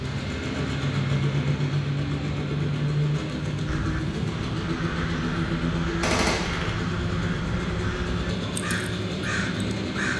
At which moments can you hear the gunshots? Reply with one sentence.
The gunshots can be heard from 6.0 to 6.8 s.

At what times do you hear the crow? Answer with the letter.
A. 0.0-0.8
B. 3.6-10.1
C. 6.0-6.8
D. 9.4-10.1
B.